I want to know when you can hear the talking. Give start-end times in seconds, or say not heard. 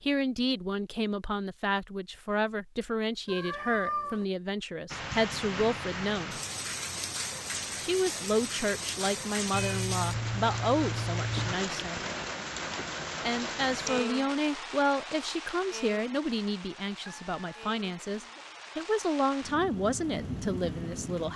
0.0-6.4, 7.8-12.0, 13.2-21.3.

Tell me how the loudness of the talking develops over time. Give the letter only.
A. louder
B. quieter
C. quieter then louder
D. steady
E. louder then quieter
D.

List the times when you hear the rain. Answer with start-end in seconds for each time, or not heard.
4.9-21.3.